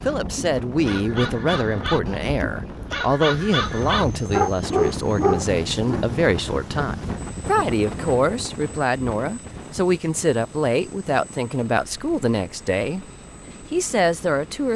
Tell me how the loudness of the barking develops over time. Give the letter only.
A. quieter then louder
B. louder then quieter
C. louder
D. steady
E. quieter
C.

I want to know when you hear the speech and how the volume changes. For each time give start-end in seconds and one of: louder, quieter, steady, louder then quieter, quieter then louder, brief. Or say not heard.
0.1-13.1 steady
13.7-14.7 brief.